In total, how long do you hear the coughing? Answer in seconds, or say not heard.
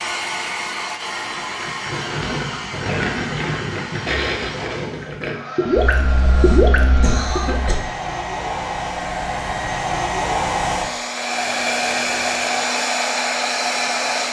2 s.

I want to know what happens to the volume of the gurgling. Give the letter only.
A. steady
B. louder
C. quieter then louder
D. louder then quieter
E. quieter
B.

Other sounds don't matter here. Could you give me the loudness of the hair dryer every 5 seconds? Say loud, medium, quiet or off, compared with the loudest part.
medium, medium, loud.